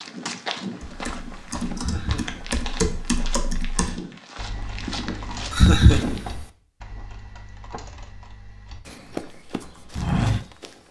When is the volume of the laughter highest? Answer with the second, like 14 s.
6 s.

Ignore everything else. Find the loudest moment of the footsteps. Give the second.
10 s.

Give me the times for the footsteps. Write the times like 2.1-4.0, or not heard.
0.0-6.2, 8.8-10.8.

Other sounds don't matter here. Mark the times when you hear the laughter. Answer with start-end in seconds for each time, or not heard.
1.8-2.4, 5.5-6.4.